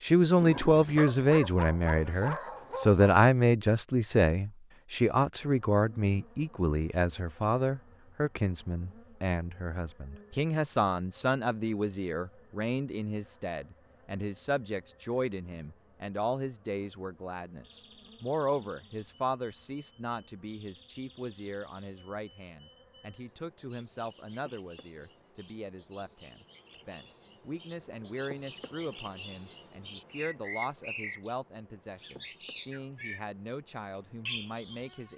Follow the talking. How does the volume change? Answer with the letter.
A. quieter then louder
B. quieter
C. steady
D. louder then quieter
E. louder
B.